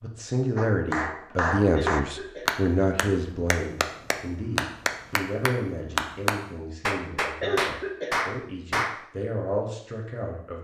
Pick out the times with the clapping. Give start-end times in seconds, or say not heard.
0.6-9.1.